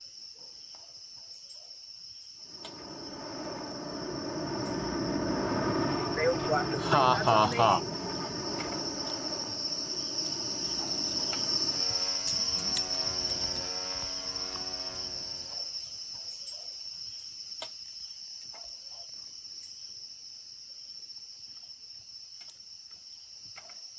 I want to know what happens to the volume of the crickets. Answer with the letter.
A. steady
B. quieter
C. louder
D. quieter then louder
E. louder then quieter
E.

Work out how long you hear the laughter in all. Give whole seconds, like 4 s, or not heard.
2 s.